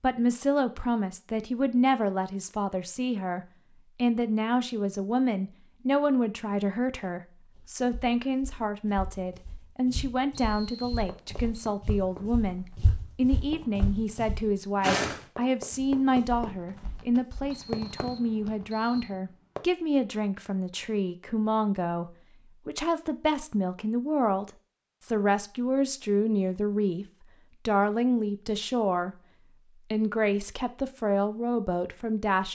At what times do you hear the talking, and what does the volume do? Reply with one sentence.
You can hear the talking from 0.0 to 29.1 s, at a steady volume; and briefly from 29.9 to 32.4 s.